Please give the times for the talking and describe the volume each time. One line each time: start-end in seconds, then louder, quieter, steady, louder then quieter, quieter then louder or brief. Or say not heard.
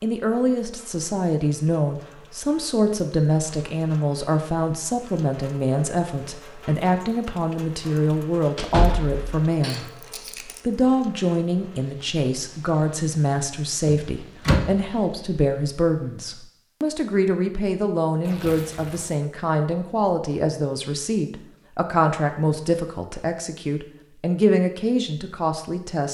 0.0-9.8 steady
10.7-26.0 steady.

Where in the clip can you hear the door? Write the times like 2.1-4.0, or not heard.
8.6-9.3, 13.8-14.8.